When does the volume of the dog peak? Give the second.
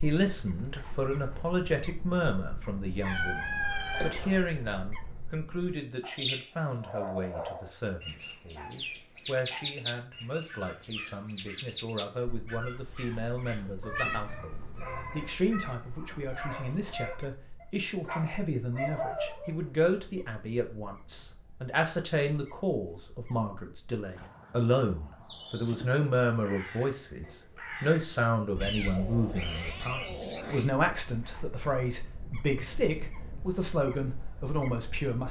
19 s.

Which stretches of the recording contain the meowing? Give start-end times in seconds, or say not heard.
3.0-4.4, 13.8-15.2, 28.6-30.7.